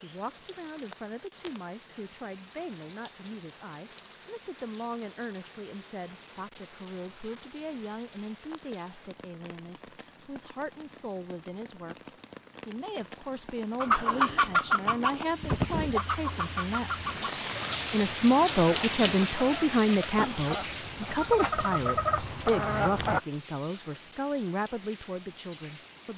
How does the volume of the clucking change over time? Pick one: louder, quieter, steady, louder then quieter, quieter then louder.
quieter then louder.